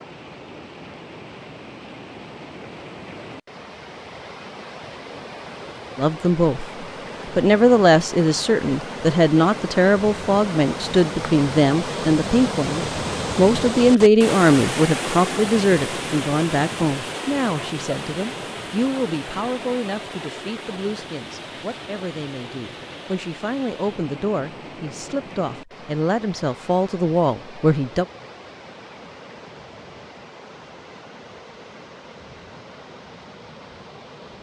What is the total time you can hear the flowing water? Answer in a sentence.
The flowing water can be heard for 34 seconds in total.